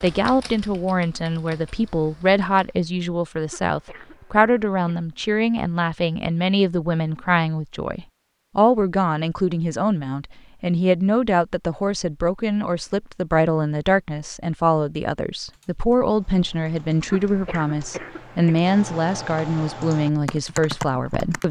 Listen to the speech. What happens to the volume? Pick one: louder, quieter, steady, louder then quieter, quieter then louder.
steady.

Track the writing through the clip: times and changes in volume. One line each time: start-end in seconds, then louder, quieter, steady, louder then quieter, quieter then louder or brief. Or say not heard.
not heard.